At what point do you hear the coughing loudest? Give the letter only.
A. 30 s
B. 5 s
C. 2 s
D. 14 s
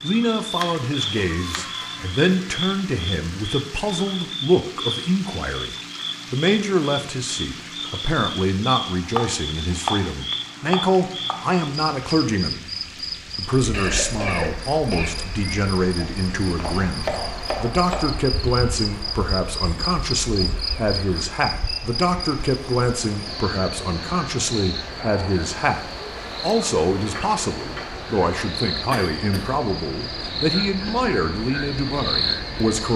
D.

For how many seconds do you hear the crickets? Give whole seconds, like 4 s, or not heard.
33 s.